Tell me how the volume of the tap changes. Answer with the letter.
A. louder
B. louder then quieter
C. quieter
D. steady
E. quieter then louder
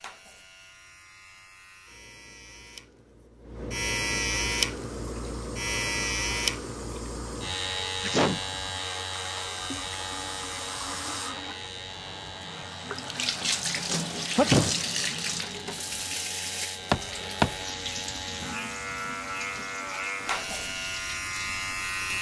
B.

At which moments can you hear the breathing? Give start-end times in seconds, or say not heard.
not heard.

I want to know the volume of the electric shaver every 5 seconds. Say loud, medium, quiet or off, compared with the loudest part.
loud, loud, medium, medium, loud.